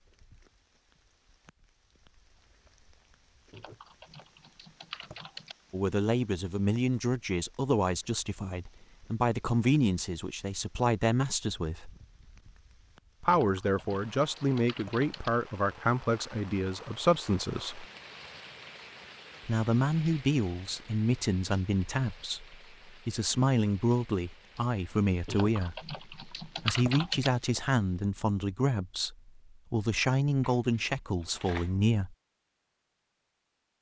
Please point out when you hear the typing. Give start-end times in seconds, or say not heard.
3.5-5.5, 13.2-15.3, 25.2-27.3.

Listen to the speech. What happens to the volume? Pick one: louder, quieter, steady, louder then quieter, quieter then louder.
steady.